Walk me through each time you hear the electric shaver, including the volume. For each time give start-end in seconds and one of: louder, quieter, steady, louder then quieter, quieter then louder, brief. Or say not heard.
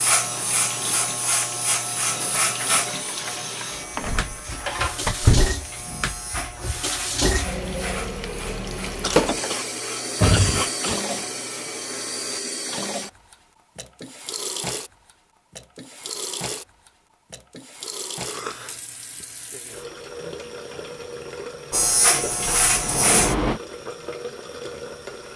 0.0-12.4 quieter
21.7-23.4 brief.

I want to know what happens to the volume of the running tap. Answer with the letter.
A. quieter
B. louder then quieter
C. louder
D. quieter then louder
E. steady
B.